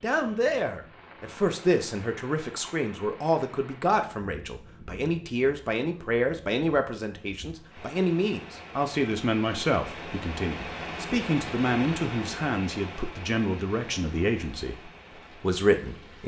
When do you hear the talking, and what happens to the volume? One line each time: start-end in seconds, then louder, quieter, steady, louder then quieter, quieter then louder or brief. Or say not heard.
0.0-16.2 steady.